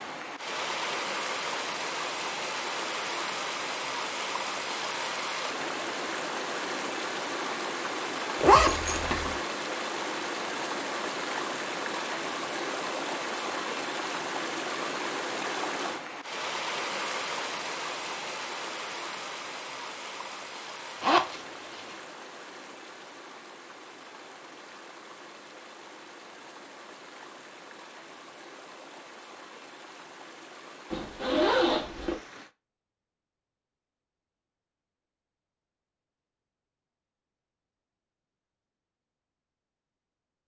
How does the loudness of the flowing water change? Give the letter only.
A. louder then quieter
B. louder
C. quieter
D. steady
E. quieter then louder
C.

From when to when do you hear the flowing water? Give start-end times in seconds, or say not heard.
0.0-32.5.